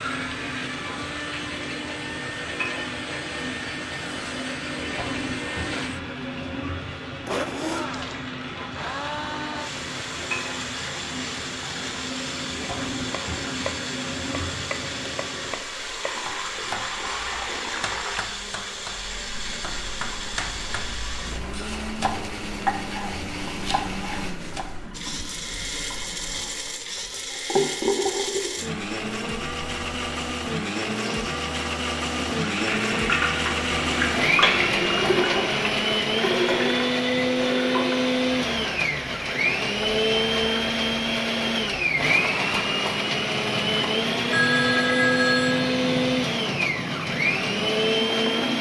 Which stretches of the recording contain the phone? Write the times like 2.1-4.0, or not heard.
44.3-45.8.